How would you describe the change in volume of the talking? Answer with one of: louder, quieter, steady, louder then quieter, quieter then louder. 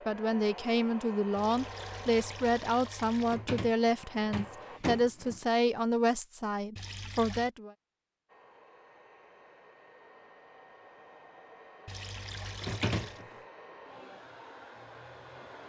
steady.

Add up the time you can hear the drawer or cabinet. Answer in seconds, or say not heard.
3 s.